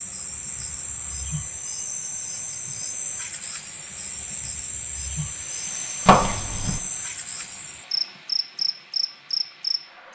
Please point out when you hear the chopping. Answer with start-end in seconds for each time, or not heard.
6.0-6.8.